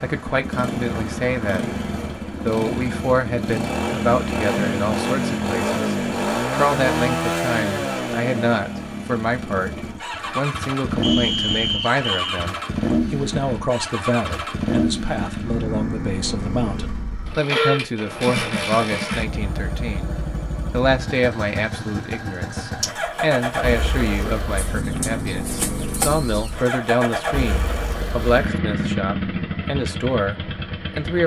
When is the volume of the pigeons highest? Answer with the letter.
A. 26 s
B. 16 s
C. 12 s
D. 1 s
A.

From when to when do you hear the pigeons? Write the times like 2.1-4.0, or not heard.
24.6-26.6.